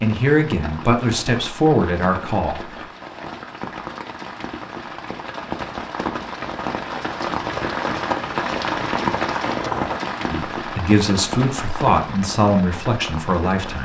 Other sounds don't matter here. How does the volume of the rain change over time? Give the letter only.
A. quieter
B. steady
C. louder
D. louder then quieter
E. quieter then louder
D.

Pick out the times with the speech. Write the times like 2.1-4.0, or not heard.
0.0-2.9, 10.3-13.8.